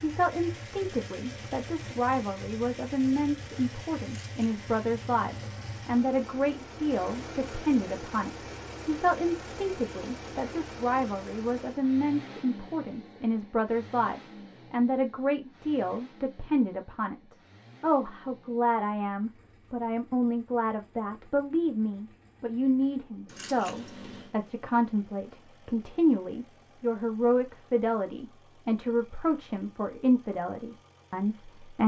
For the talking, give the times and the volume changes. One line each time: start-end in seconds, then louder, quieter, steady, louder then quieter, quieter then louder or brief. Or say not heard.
0.0-31.8 steady.